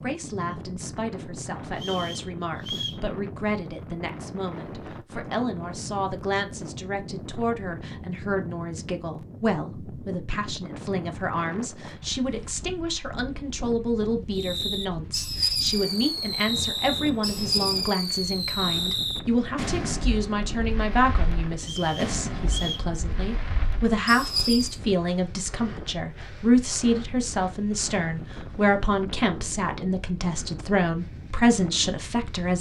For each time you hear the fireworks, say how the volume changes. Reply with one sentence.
The fireworks can be heard from 14.3 to 24.8 s, getting quieter.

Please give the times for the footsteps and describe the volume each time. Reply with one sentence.
You can't hear the footsteps here.